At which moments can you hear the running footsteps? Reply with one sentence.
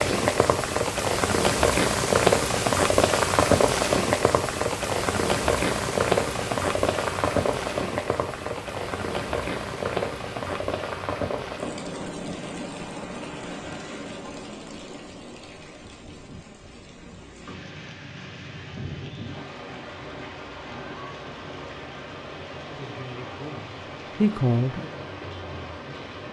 The running footsteps can't be heard in this clip.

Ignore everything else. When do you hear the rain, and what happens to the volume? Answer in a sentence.
The rain can be heard from 0.0 to 26.2 s, getting quieter.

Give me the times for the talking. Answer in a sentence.
You can hear the talking from 22.6 to 24.9 s.